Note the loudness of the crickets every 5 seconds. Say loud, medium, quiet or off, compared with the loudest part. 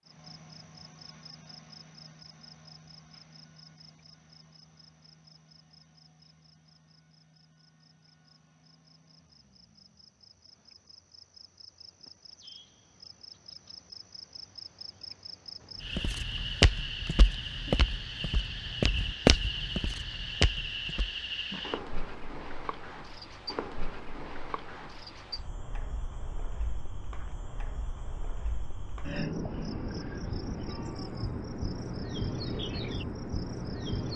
quiet, quiet, quiet, loud, loud, medium, loud.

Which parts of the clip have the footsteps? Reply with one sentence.
The footsteps can be heard from 15.9 to 21.1 s.